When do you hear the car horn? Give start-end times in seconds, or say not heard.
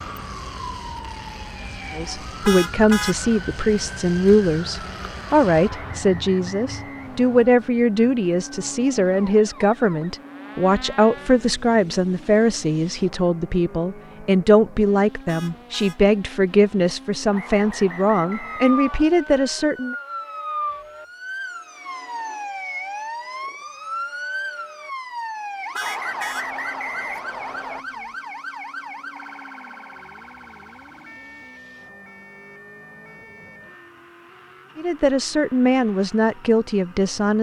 2.5-3.1, 15.2-16.0, 25.8-26.4.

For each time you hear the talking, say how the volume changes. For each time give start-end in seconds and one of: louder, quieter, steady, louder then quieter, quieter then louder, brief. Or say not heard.
1.9-19.9 steady
34.8-37.3 brief.